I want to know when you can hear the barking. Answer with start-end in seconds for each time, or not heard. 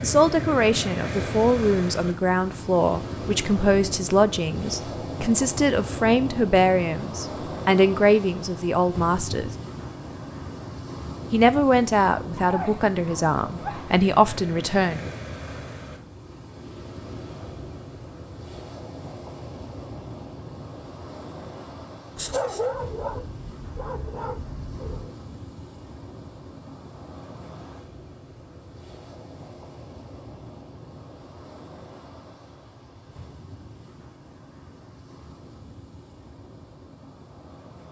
12.3-13.9, 22.1-25.1.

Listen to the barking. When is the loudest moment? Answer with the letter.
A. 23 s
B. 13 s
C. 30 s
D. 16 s
A.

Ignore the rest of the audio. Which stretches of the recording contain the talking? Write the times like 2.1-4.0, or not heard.
0.0-9.5, 11.3-15.1.